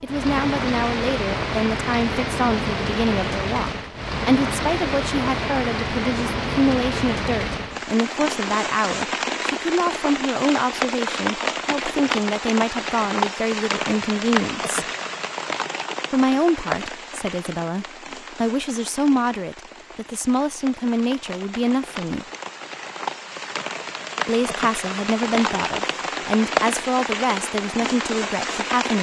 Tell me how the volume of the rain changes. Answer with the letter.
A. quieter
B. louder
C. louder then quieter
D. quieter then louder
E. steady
D.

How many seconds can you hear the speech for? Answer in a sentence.
The speech can be heard for 26 seconds in total.